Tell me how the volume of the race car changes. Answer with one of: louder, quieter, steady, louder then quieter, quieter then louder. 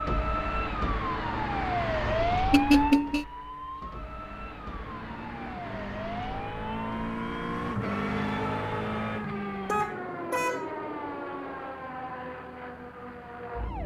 louder then quieter.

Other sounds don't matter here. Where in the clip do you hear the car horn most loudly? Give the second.
3 s.